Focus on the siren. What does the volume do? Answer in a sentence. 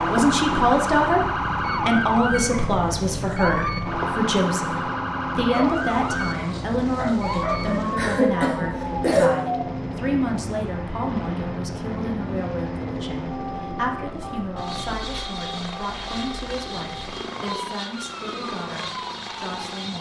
The loudness of the siren goes down.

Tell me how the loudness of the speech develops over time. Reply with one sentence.
The volume of the speech goes down.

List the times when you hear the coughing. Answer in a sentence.
The coughing can be heard from 8.0 to 9.3 s.